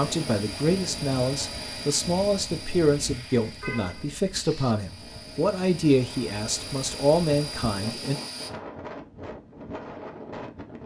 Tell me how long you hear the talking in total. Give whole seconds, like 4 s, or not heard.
8 s.